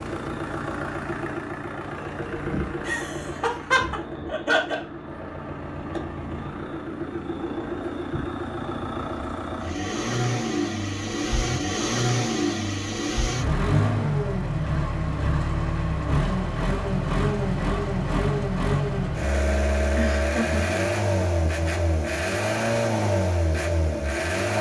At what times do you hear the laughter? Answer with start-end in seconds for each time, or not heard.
2.9-4.8, 19.9-20.8.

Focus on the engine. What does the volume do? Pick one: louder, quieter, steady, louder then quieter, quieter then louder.
louder.